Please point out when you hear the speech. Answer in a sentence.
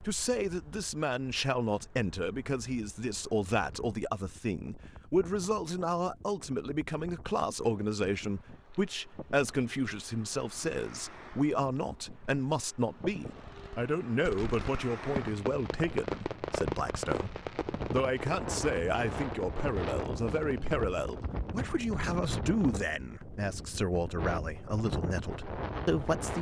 The speech can be heard from 0.0 to 26.3 s.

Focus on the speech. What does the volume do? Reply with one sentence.
The loudness of the speech stays about the same.